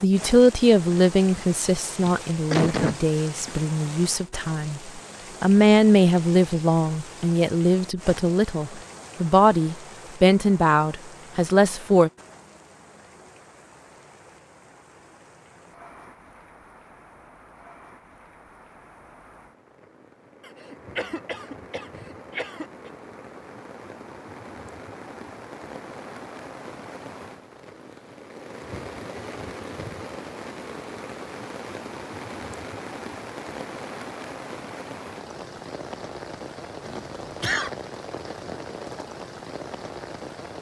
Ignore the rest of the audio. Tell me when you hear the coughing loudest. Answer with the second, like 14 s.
3 s.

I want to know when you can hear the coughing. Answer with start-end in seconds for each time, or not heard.
2.0-3.5, 20.4-22.9, 36.9-37.7.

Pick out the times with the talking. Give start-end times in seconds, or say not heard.
0.0-12.1.